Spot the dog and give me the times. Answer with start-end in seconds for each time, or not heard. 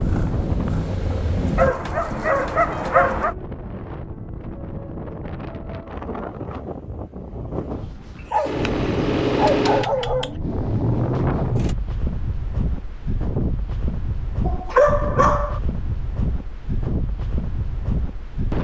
1.6-3.4, 8.2-10.3, 14.4-15.6.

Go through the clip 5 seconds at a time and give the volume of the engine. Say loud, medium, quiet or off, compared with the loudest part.
medium, loud, medium, off.